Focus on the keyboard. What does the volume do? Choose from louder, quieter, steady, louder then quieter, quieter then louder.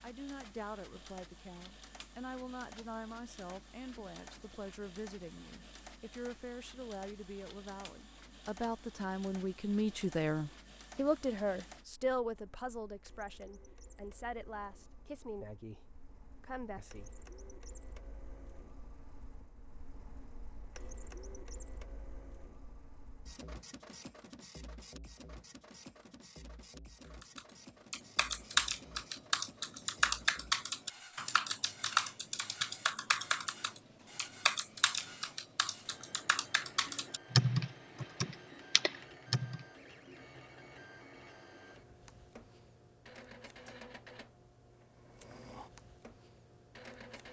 quieter then louder.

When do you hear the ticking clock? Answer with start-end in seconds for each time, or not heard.
not heard.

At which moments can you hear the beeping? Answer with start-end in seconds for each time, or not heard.
not heard.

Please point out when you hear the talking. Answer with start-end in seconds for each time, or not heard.
0.0-17.1.